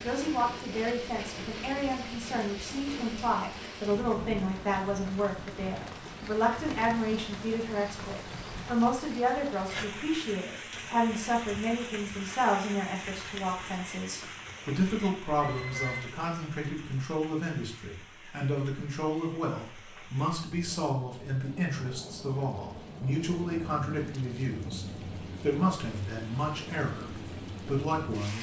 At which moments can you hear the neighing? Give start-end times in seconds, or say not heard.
15.3-16.1.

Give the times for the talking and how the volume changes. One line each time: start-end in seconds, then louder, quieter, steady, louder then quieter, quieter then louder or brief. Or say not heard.
0.0-28.3 steady.